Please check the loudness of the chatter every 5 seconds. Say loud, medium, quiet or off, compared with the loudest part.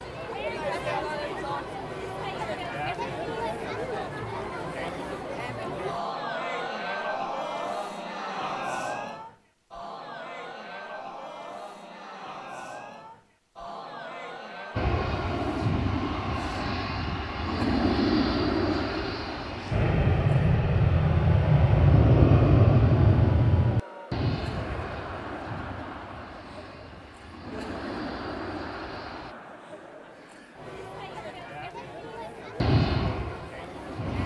loud, loud, medium, medium, medium, medium, medium.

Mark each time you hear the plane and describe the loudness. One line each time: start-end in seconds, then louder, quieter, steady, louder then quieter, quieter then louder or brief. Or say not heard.
14.8-29.4 louder then quieter
32.6-34.2 brief.